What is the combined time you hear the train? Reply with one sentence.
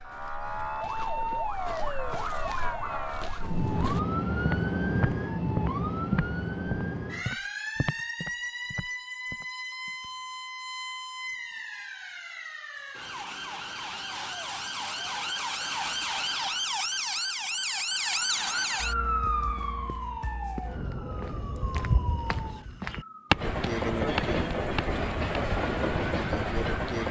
The train can be heard for 4 seconds in total.